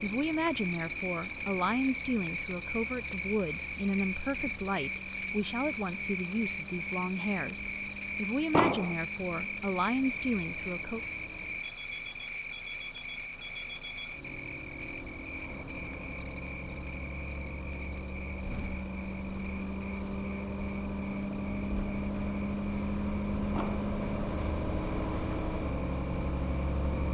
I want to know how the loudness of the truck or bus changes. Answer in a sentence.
The volume of the truck or bus goes up.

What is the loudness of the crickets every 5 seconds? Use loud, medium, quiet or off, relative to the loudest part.
loud, loud, loud, medium, quiet, quiet.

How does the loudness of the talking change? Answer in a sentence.
The loudness of the talking stays about the same.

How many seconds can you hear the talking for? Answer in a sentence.
You can hear the talking for 11 seconds altogether.